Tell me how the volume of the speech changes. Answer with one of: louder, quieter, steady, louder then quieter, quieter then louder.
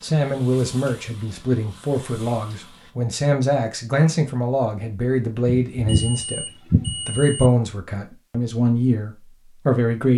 steady.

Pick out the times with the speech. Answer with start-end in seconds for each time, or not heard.
0.0-6.5, 7.0-10.1.